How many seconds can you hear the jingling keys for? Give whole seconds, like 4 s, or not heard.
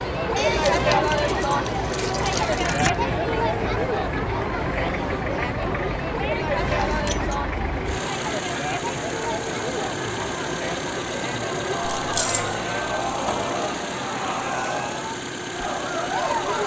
4 s.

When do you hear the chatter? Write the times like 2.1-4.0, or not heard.
0.0-16.6.